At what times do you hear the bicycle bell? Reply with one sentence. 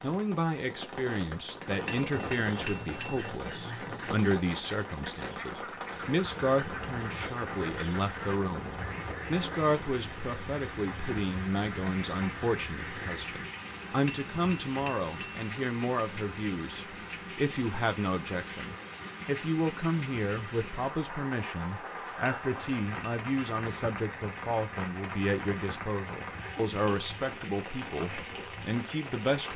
The bicycle bell can be heard from 1.9 to 3.3 s, from 14.1 to 15.5 s and from 22.2 to 23.6 s.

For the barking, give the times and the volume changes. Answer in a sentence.
You can't hear the barking here.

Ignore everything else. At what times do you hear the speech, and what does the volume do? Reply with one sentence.
The speech can be heard from 0.0 to 29.5 s, at a steady volume.